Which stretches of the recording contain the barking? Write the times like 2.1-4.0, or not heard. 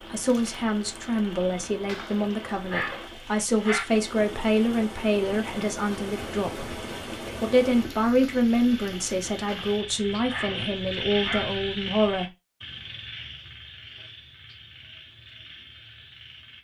1.9-3.9, 9.4-11.4.